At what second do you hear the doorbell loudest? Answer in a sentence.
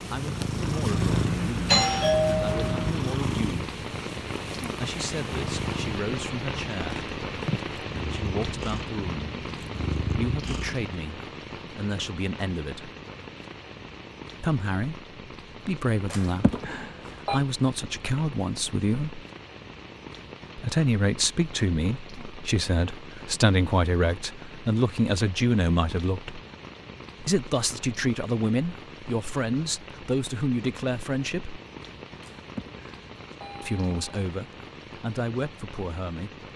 The volume of the doorbell peaks at 2 seconds.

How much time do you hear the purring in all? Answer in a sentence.
You can hear the purring for 11 seconds altogether.